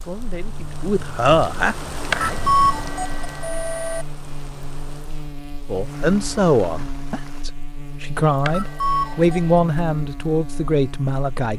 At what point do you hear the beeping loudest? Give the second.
3 s.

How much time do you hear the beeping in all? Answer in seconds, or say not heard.
3 s.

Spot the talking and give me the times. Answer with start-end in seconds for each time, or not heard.
0.0-2.4, 5.7-11.5.